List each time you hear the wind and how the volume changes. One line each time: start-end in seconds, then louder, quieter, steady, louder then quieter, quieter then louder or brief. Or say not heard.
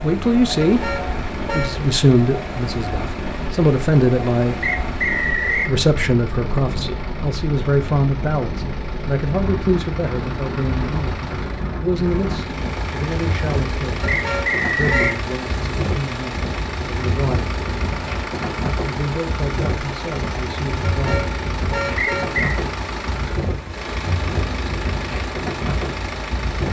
0.0-26.6 steady.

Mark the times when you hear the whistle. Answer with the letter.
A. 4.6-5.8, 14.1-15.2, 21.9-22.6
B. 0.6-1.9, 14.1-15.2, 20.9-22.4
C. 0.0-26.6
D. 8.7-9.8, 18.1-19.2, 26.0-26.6
A.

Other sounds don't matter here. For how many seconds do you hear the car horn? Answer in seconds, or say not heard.
4 s.